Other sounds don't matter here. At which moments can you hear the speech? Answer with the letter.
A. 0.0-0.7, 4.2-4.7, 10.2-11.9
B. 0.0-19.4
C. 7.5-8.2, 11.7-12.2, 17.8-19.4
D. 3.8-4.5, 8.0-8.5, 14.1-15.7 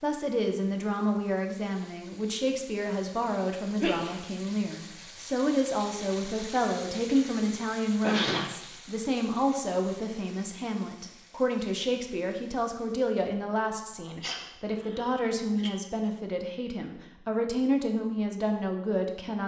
B.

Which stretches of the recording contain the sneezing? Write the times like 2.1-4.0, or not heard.
3.8-4.5, 8.0-8.5, 14.1-15.7.